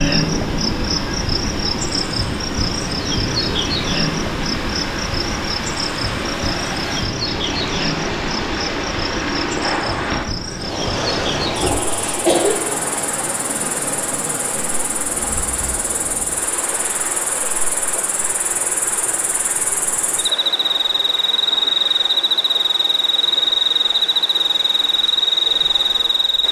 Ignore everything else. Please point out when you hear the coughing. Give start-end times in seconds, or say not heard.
11.4-12.6.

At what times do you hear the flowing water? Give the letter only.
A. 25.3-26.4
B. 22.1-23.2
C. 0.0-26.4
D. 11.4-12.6
C.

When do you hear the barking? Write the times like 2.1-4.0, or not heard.
not heard.